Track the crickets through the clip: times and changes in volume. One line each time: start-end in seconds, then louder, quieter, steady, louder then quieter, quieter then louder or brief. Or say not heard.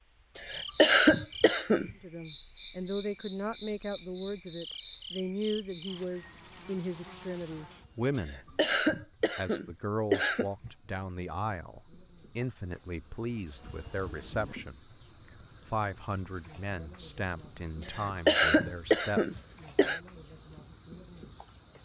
0.0-21.8 louder.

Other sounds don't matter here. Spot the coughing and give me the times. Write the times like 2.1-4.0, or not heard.
0.3-1.9, 8.2-10.7, 17.8-20.0.